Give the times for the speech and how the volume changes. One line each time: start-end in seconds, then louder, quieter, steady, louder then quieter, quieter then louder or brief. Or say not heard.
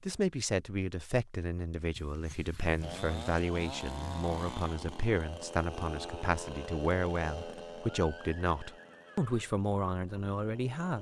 0.0-10.9 steady.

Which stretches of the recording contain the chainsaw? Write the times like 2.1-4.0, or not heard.
2.8-10.9.